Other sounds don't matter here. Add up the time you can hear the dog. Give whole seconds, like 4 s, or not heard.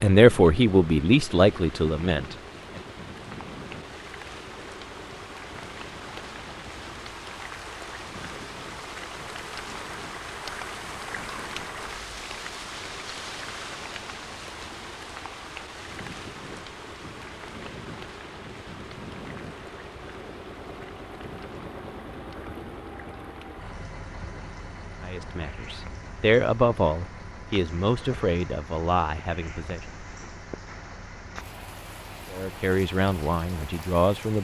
not heard.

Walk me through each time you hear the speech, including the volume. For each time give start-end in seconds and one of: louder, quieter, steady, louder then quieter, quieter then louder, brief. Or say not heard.
0.0-2.8 brief
25.0-29.9 louder then quieter
32.3-34.3 brief.